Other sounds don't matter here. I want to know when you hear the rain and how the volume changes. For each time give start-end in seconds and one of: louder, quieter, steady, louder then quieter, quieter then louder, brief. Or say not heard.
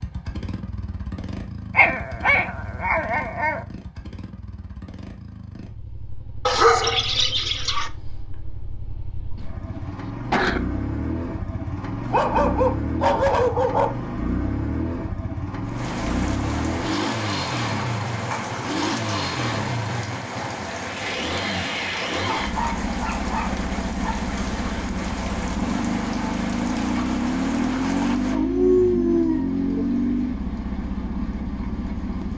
15.6-32.3 quieter.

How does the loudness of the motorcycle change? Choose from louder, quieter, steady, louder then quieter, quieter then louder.
louder.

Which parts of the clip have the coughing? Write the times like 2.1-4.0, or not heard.
9.3-10.6.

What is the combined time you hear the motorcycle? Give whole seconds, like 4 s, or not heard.
32 s.